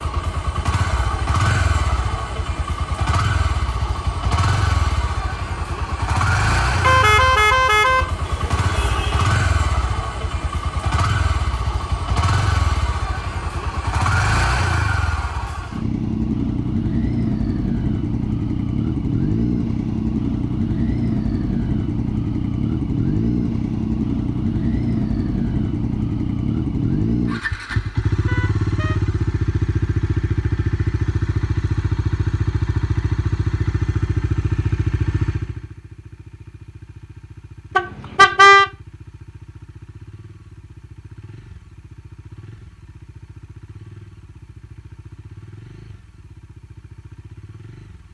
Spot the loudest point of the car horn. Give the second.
38 s.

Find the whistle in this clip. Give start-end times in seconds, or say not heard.
not heard.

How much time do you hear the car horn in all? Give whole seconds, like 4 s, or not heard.
4 s.